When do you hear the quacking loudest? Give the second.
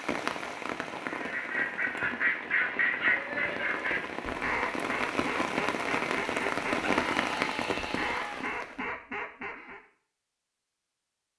3 s.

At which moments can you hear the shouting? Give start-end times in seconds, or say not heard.
6.8-8.4.